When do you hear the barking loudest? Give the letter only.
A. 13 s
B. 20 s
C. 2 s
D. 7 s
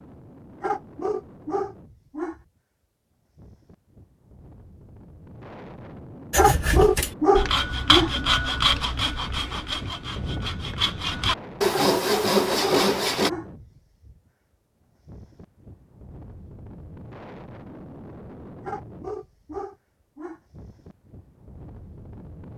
D.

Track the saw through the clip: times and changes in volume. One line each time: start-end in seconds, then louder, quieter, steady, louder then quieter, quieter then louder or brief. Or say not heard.
6.3-13.3 quieter then louder.